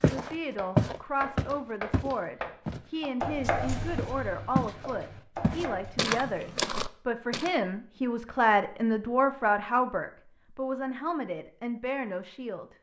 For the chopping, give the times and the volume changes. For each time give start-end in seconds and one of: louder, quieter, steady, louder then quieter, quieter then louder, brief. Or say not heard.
0.2-6.2 louder then quieter.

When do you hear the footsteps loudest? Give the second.
1 s.